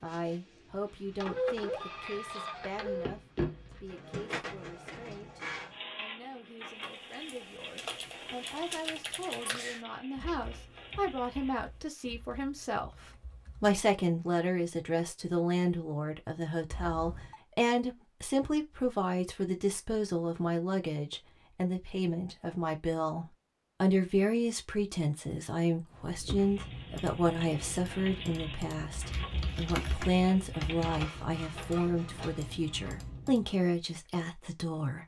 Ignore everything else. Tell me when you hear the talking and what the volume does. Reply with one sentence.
You can hear the talking from 0.0 to 35.0 s, getting louder.